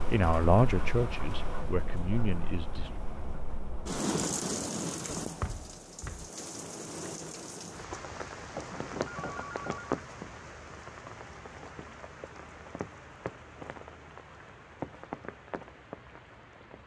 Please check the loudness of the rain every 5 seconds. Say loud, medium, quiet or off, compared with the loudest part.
loud, loud, medium, medium.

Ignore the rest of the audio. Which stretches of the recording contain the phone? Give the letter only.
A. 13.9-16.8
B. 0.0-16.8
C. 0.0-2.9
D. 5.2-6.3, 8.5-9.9
D.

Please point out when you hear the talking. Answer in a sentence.
You can hear the talking from 0.0 to 2.9 s.